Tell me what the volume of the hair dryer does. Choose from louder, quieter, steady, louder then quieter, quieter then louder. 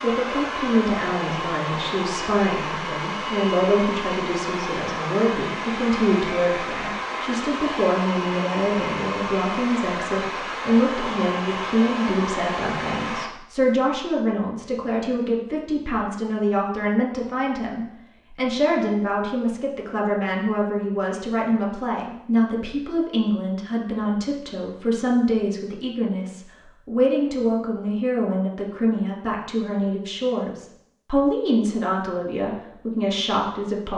steady.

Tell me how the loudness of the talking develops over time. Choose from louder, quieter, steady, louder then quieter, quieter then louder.
steady.